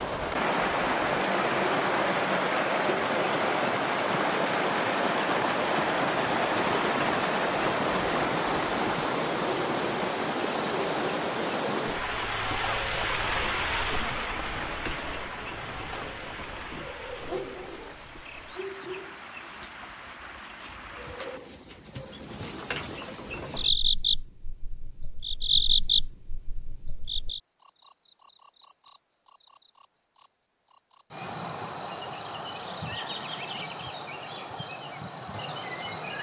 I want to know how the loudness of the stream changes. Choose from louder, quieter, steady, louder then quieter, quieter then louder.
quieter.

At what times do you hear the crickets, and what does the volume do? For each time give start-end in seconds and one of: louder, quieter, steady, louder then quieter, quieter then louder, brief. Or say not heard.
0.0-36.1 louder.